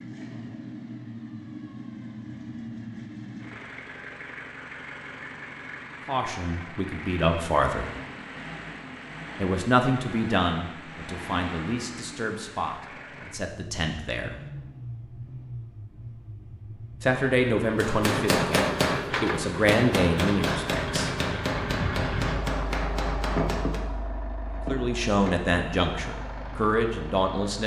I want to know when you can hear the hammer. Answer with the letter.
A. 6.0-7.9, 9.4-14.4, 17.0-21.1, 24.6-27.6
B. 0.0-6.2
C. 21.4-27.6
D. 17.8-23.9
D.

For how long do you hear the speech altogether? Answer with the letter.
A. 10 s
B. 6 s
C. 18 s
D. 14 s
D.